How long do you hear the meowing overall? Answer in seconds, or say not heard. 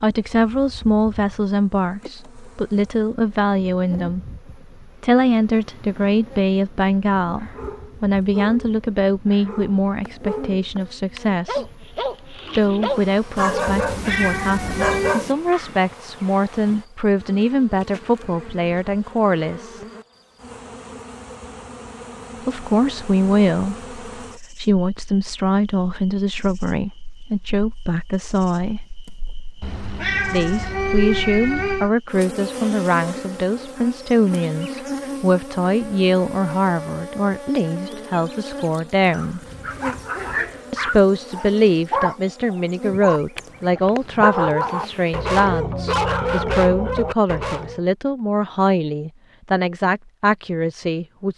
4 s.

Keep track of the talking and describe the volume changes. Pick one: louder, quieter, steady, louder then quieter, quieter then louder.
steady.